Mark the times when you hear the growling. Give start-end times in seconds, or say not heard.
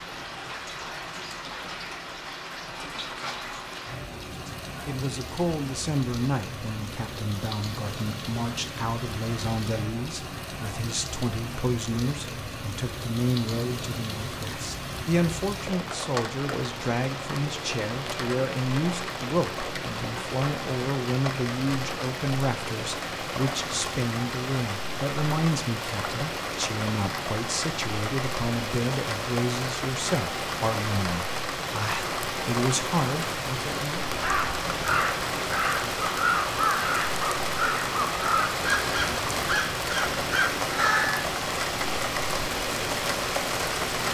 not heard.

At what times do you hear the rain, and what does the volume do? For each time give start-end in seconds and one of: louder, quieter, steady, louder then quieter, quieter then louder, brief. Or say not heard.
0.0-44.0 louder.